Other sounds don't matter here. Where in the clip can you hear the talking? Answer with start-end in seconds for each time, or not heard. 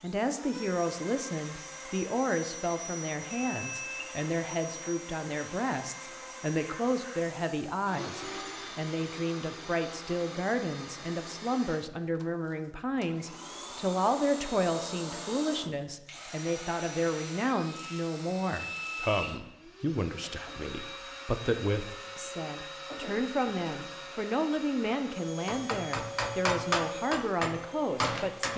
0.0-28.5.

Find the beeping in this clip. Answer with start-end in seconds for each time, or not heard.
3.3-4.2, 18.6-19.4.